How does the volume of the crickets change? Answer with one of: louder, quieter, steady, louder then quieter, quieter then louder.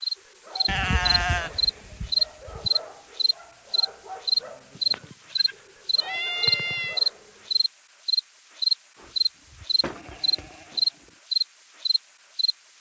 steady.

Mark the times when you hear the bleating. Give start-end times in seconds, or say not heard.
0.7-2.7, 4.8-7.0, 8.9-11.1.